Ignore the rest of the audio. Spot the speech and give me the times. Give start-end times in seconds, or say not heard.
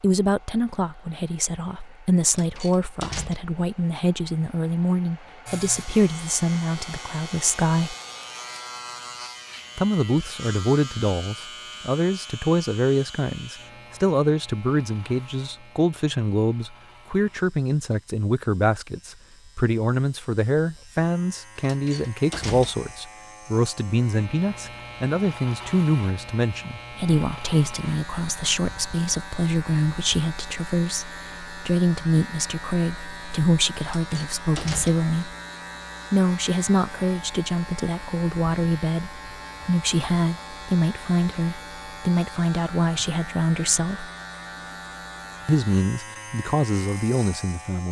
0.0-8.0, 9.8-35.4, 36.1-44.1, 45.5-47.8.